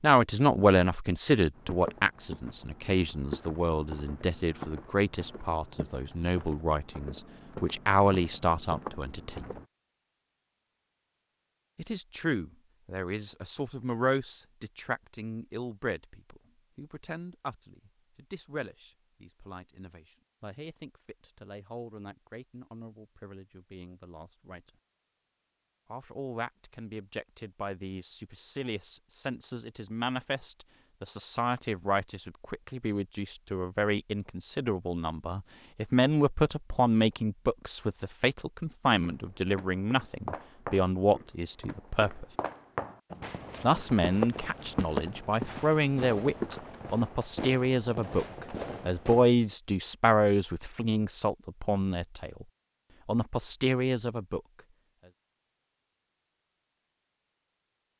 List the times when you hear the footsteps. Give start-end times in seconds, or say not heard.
1.6-9.7, 39.0-46.9.